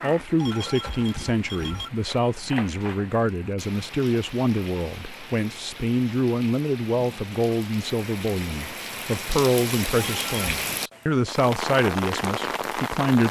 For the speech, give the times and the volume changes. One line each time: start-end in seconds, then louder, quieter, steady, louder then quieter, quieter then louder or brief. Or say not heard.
0.0-13.2 steady.